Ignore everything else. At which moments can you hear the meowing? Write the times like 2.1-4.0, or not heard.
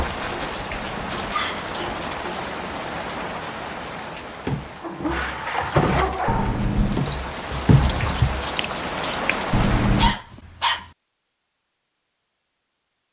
0.2-1.2, 6.2-7.0, 9.5-10.2.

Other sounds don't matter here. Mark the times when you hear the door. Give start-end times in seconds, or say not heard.
not heard.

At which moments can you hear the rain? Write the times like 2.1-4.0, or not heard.
0.0-10.1.